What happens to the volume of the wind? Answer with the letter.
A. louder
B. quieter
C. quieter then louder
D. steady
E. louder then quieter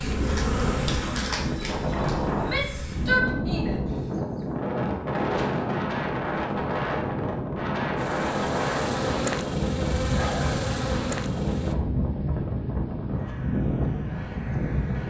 D.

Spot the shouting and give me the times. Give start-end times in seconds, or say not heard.
2.4-3.8.